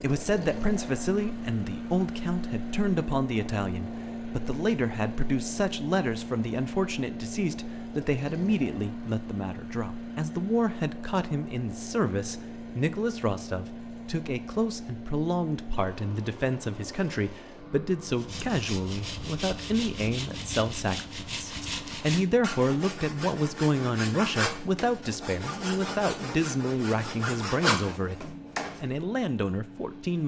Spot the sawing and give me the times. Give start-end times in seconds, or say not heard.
18.1-28.9.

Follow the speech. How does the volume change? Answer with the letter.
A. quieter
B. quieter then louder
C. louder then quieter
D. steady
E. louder
D.